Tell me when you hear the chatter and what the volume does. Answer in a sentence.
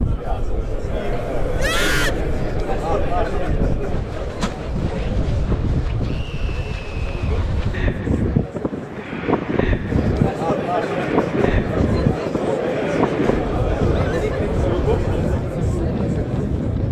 The chatter can be heard from 0.0 to 16.8 s, getting quieter then louder.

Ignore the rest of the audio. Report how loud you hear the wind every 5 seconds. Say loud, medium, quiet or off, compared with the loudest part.
medium, loud, loud, loud.